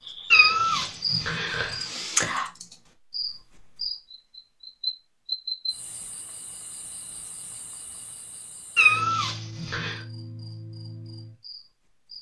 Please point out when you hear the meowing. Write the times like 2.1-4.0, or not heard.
0.3-1.8, 8.8-10.0.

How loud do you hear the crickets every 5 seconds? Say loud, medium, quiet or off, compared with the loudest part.
loud, medium, quiet.